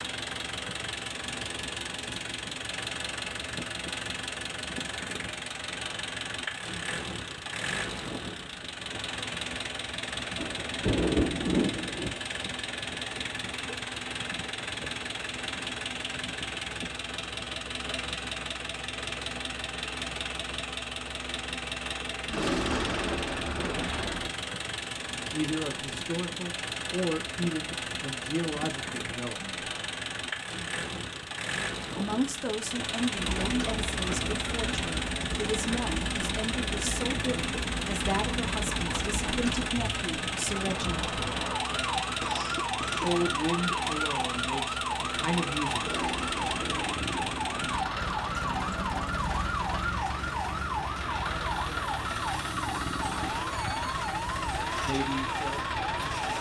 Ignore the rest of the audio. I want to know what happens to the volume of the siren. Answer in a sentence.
The loudness of the siren stays about the same.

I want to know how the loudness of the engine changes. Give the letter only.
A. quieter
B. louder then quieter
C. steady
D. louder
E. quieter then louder
C.